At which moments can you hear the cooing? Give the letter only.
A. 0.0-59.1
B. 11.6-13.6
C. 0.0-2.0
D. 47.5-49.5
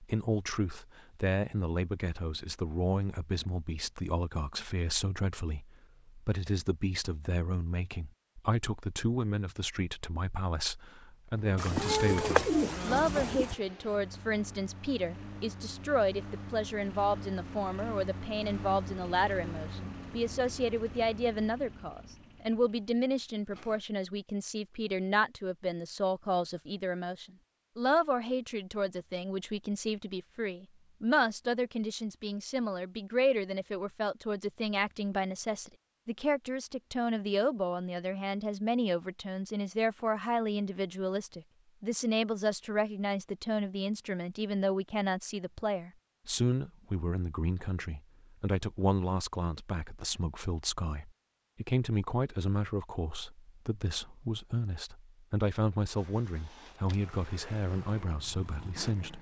B.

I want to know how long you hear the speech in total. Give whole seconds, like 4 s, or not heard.
59 s.